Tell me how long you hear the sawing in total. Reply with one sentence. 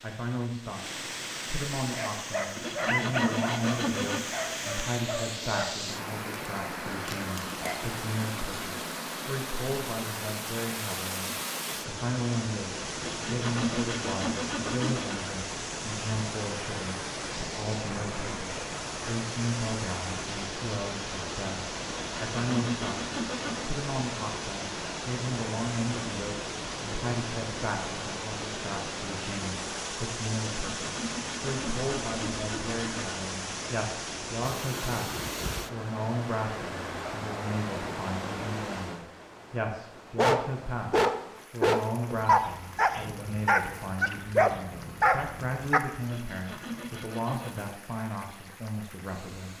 The sawing can be heard for 10 seconds in total.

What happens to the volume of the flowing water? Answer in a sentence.
The volume of the flowing water goes down.